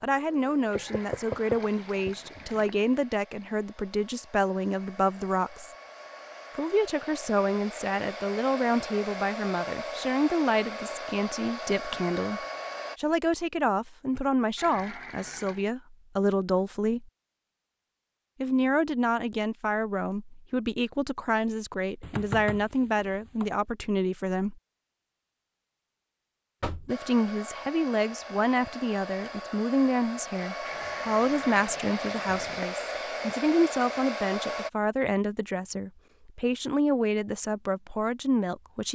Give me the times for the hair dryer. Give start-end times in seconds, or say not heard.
0.1-13.0, 26.9-34.7.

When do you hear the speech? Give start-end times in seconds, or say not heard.
0.0-5.7, 6.5-17.1, 18.4-24.6, 26.7-38.8.